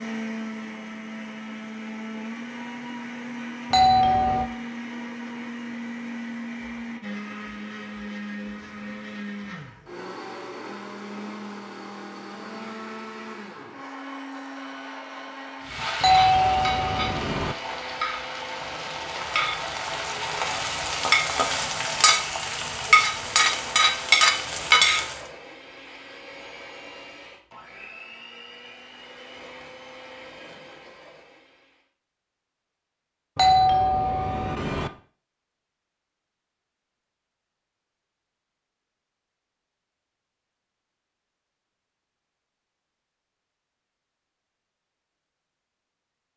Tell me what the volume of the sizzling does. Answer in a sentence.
The volume of the sizzling goes up.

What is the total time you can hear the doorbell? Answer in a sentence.
You can hear the doorbell for 4 seconds altogether.